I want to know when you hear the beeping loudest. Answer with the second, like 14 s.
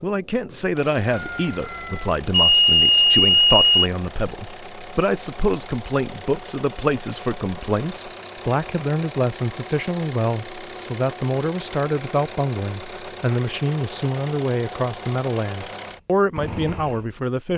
3 s.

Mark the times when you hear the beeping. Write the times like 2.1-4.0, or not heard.
1.1-3.6.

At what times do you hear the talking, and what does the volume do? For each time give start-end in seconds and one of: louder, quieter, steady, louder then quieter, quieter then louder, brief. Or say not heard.
0.0-17.5 steady.